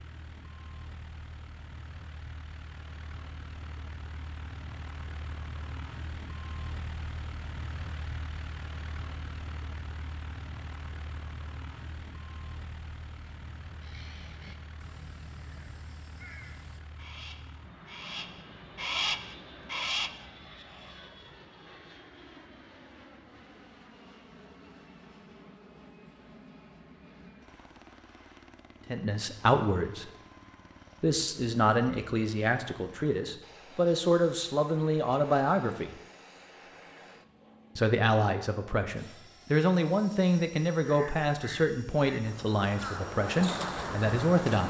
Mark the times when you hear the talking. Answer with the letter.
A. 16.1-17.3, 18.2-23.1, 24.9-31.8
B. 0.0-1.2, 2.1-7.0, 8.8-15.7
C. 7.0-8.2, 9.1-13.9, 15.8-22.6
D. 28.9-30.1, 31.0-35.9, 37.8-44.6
D.